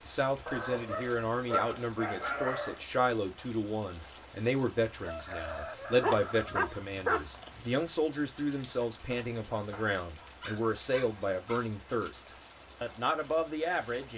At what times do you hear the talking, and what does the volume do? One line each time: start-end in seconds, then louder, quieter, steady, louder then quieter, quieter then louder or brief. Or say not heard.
0.1-14.1 steady.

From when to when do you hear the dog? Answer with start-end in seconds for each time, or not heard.
0.5-2.9, 6.0-7.7, 10.2-11.8.